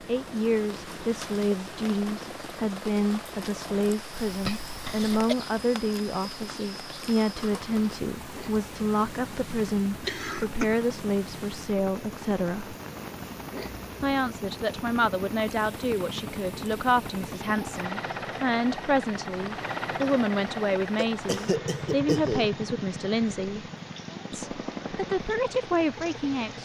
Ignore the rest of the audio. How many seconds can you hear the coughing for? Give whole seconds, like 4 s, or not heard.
3 s.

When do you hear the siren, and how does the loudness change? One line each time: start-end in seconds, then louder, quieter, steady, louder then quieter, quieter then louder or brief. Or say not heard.
not heard.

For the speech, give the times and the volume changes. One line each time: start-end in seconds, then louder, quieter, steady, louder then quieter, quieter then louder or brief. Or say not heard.
0.1-12.8 steady
14.0-23.6 steady
24.3-26.5 brief.